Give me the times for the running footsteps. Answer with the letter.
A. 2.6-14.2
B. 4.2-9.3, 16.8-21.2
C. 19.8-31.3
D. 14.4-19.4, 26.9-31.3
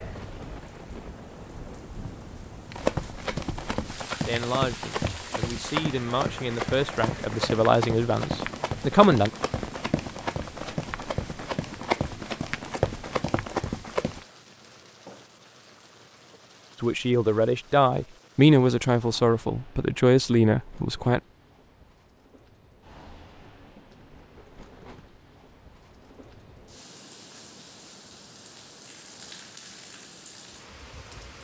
A.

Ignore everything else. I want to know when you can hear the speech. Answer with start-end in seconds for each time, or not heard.
4.2-9.3, 16.8-21.2.